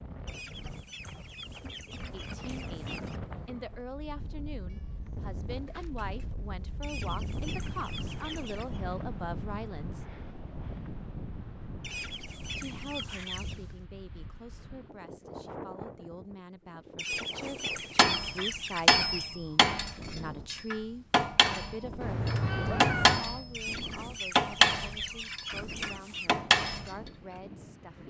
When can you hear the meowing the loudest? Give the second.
23 s.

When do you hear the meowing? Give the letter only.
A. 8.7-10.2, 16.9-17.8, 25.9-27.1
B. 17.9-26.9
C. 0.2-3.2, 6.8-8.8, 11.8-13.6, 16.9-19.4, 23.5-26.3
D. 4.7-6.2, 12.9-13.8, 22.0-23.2
D.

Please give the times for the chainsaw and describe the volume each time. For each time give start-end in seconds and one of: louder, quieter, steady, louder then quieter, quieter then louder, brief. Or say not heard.
not heard.